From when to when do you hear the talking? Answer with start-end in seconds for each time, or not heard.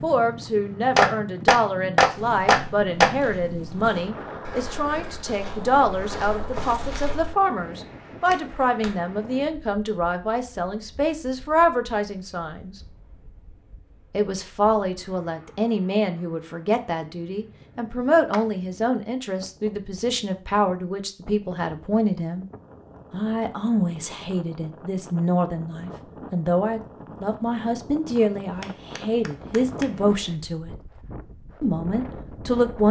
0.0-12.8, 14.1-22.4, 23.1-30.7, 31.6-32.8.